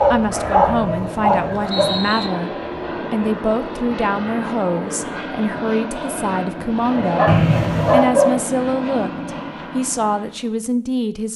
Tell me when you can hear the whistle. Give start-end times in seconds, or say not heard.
0.7-2.3, 7.2-8.1.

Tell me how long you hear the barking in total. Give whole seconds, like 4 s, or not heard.
3 s.